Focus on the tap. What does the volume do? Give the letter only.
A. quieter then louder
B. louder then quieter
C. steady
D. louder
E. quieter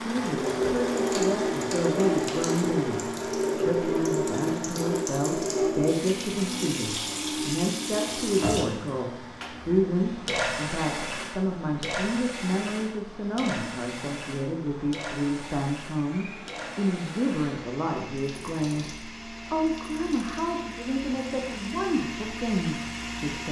E.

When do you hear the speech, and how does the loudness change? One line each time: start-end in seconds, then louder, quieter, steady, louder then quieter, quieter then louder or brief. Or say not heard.
0.0-23.4 steady.